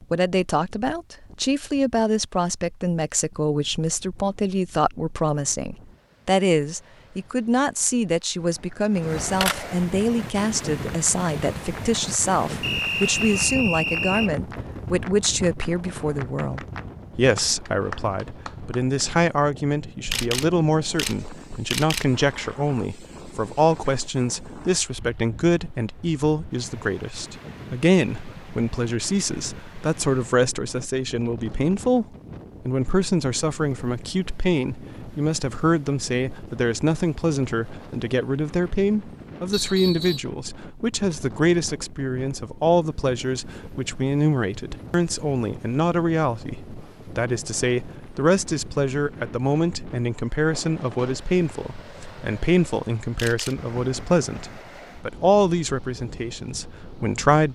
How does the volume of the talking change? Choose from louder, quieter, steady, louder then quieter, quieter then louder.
steady.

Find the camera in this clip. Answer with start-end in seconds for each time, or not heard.
8.9-9.7, 20.1-22.1, 53.1-53.7.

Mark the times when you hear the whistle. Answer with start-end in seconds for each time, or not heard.
12.6-14.3, 39.5-40.2.